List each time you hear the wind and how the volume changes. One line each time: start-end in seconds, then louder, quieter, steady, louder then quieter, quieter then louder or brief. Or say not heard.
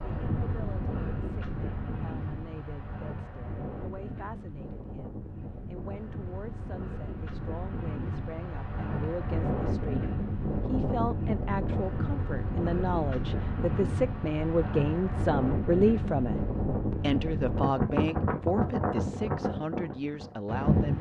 0.0-20.9 louder.